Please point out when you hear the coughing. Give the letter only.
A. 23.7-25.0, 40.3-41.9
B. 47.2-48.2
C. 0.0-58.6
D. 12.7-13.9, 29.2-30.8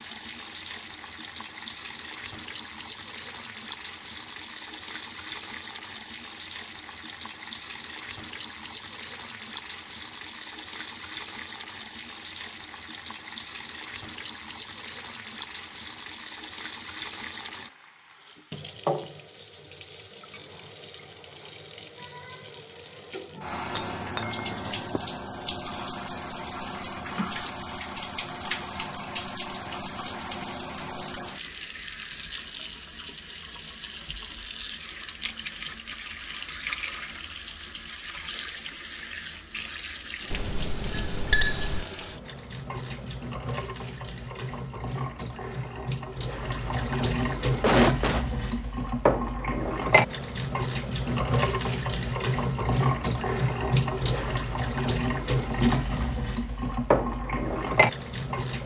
B.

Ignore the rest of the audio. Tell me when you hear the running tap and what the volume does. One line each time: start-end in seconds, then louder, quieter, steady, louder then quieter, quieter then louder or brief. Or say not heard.
0.0-58.6 louder.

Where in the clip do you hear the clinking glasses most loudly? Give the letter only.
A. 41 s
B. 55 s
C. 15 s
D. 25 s
A.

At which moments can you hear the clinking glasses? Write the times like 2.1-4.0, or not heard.
23.7-25.0, 40.3-41.9.